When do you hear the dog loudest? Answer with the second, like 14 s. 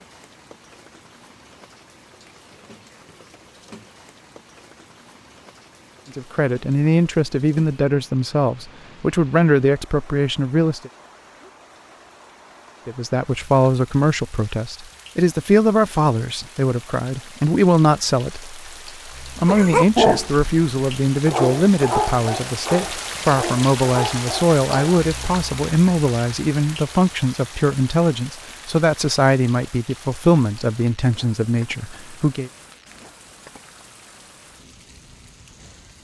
20 s.